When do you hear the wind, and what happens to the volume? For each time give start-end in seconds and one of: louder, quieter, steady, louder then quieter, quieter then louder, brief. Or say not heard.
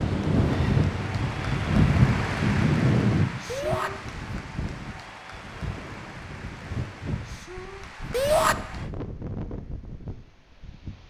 0.0-11.0 quieter.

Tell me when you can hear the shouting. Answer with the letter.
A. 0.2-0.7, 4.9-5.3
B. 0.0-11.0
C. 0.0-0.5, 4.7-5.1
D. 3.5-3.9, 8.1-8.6
D.